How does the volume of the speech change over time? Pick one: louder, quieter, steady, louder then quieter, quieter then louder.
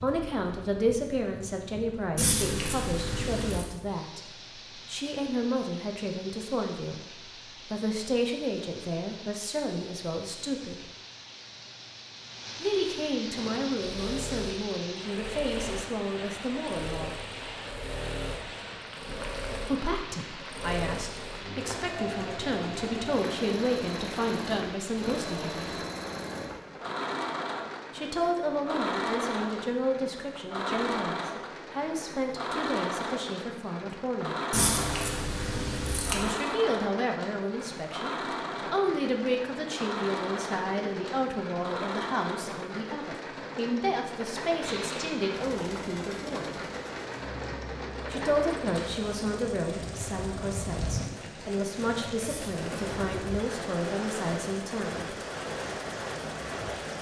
steady.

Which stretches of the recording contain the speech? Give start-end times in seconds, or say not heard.
0.0-10.9, 12.6-17.2, 19.6-25.7, 27.9-34.4, 36.1-46.6, 48.1-55.1.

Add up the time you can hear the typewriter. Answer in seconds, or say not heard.
not heard.